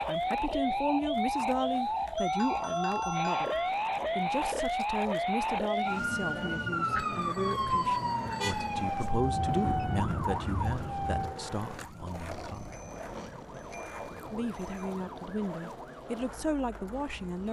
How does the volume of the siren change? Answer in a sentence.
The loudness of the siren goes down.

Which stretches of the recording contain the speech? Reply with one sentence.
The speech can be heard from 0.1 to 12.7 s and from 14.2 to 17.4 s.